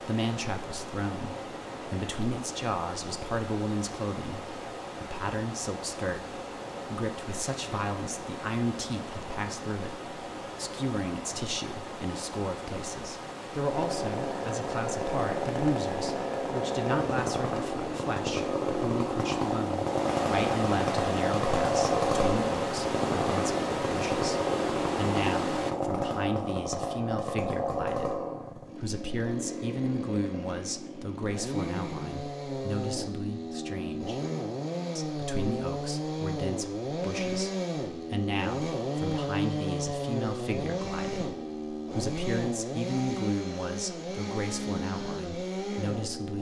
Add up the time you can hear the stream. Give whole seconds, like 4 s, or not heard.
26 s.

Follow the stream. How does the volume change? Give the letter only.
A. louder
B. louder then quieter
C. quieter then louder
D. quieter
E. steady
A.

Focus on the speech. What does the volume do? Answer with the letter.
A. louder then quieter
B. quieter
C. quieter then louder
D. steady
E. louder
D.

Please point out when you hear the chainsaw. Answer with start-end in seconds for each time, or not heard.
13.7-46.3.